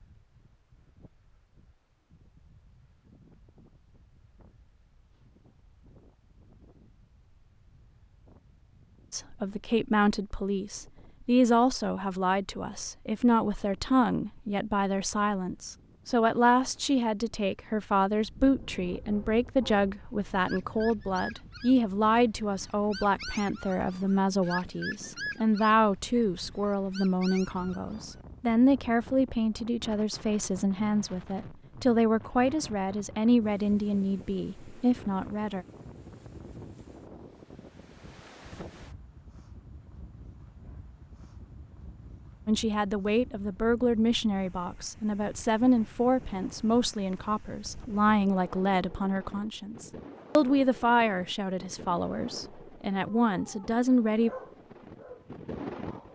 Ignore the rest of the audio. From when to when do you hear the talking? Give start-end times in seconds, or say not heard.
9.1-35.6, 42.5-54.3.